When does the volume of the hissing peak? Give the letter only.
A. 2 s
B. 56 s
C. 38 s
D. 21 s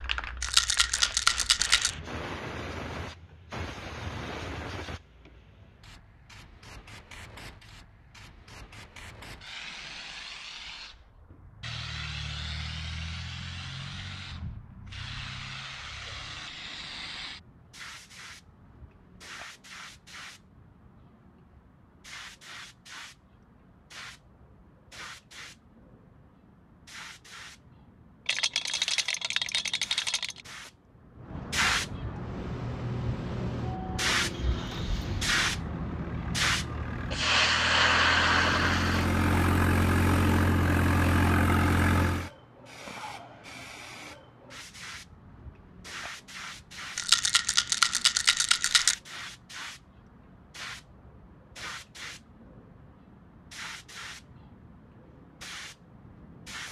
C.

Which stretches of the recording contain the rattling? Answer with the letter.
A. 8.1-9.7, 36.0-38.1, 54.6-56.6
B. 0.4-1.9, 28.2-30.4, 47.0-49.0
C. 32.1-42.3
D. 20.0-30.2
B.